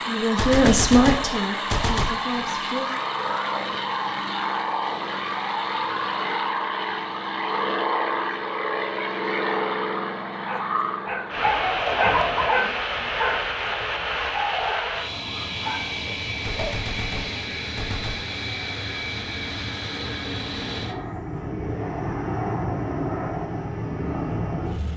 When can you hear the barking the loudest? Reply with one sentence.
The volume of the barking peaks at 12 seconds.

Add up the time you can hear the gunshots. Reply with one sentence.
The gunshots can be heard for 4 seconds in total.